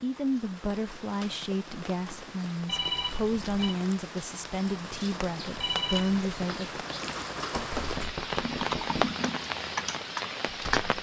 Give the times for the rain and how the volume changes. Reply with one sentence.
The rain can be heard from 0.0 to 10.9 s, getting louder.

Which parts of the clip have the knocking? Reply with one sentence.
You can hear the knocking from 7.5 to 9.2 s.